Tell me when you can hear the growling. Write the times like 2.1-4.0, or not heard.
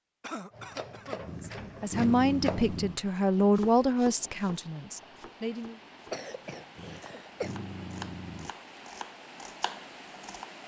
1.2-3.0, 6.8-8.6.